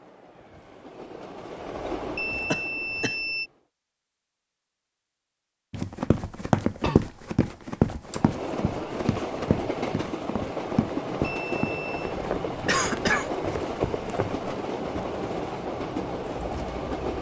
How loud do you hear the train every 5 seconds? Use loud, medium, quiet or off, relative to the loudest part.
medium, loud, loud, loud.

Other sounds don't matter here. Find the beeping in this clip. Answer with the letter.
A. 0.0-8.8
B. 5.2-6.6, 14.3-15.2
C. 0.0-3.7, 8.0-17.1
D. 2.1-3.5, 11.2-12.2
D.